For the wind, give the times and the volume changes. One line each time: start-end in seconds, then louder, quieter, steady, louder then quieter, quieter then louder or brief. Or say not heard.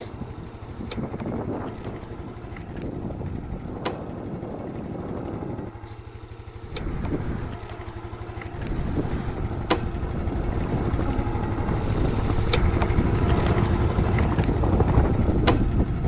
0.0-16.0 louder.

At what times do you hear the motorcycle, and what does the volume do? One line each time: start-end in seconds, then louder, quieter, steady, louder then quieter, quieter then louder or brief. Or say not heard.
0.0-16.0 louder.